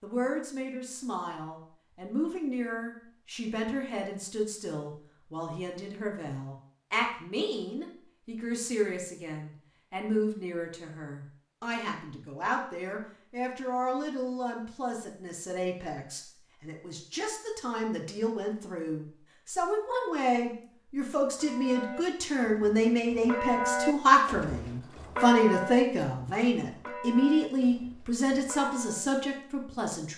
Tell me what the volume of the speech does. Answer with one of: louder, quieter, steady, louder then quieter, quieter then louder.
louder.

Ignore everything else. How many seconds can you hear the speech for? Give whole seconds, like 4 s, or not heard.
30 s.